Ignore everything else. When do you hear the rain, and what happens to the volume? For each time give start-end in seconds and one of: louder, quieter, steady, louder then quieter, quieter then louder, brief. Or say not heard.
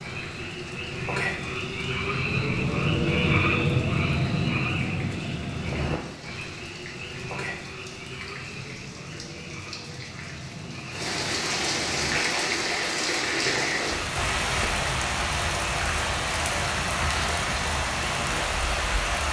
0.0-19.2 louder.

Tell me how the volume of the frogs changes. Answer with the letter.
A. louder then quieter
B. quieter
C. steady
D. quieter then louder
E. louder
B.